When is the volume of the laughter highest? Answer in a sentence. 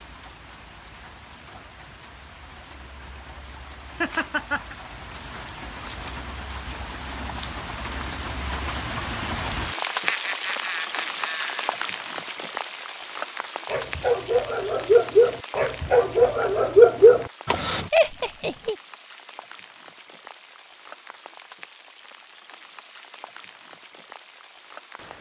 The volume of the laughter peaks at 18 seconds.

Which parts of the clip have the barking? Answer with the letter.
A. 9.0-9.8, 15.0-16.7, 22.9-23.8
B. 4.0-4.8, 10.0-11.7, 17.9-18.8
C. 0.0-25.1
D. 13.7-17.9
D.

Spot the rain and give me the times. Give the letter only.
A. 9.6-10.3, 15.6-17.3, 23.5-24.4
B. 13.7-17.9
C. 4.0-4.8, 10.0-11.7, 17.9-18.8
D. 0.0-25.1
D.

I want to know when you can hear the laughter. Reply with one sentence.
The laughter can be heard from 4.0 to 4.8 s, from 10.0 to 11.7 s and from 17.9 to 18.8 s.